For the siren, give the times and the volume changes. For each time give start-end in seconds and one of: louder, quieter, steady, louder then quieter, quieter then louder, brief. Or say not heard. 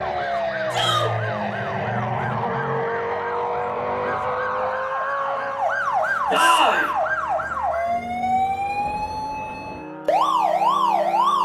0.0-11.4 louder.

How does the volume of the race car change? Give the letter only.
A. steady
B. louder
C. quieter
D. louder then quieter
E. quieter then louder
C.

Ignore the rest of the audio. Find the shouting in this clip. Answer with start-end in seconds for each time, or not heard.
0.7-1.1, 6.3-6.9.